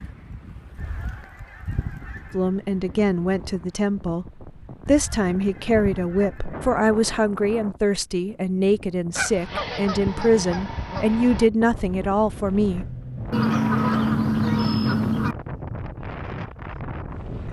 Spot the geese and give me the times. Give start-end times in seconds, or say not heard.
0.8-2.5, 4.8-6.8, 9.2-11.5, 13.3-15.3.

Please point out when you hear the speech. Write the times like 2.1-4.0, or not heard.
2.3-12.8.